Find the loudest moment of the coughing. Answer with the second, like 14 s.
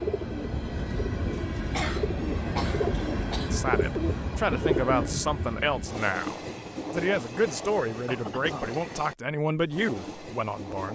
2 s.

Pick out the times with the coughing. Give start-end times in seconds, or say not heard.
1.7-3.5, 8.1-8.7.